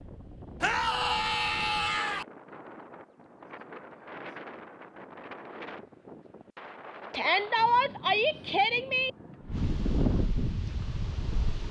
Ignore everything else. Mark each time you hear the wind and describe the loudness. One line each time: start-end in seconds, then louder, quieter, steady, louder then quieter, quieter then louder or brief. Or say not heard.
0.0-11.6 louder.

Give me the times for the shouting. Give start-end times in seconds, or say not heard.
0.6-2.2, 7.1-9.1.